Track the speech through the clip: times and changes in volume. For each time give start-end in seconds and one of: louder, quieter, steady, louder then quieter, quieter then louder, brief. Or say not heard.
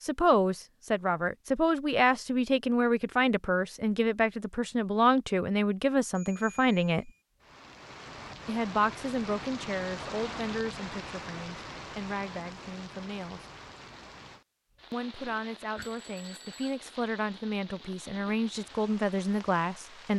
0.0-7.1 steady
8.4-13.4 quieter
14.9-20.1 louder.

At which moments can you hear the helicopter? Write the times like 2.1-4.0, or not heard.
not heard.